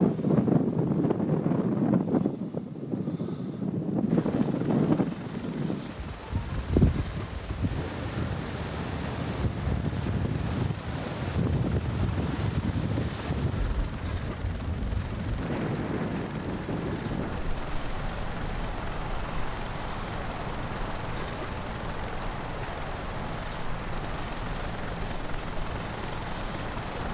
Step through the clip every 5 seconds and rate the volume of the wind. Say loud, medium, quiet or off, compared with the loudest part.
loud, medium, medium, medium, quiet, quiet.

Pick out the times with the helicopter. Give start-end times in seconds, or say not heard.
4.0-27.0.